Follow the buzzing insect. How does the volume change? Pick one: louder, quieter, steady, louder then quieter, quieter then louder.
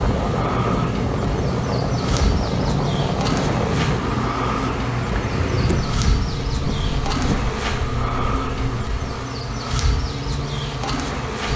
steady.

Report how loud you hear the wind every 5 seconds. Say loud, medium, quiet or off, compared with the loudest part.
loud, loud, off.